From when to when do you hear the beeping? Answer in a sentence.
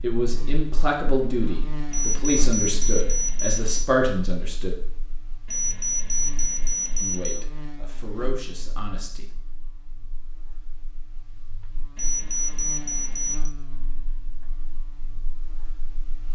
The beeping can be heard from 1.9 to 3.9 s, from 5.5 to 7.5 s and from 11.9 to 13.5 s.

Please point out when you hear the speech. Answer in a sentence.
The speech can be heard from 0.0 to 4.7 s and from 7.0 to 9.2 s.